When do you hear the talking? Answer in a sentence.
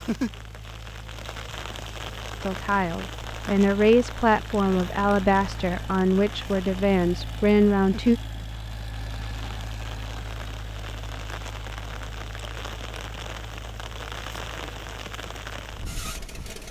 The talking can be heard from 2.4 to 8.2 s.